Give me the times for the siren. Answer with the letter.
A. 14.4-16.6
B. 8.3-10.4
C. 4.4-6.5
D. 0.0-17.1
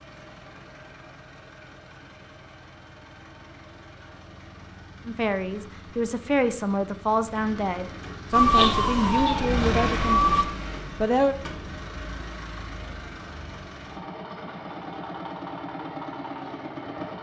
B.